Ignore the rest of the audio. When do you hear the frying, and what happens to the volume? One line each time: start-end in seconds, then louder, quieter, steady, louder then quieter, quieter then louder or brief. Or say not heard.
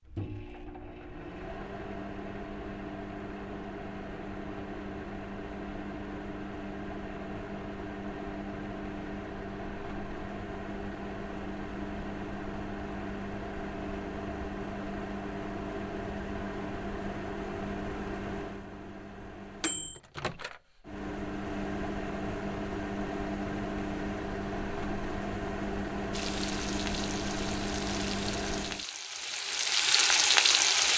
26.1-30.9 louder.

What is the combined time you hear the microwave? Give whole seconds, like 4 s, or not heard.
29 s.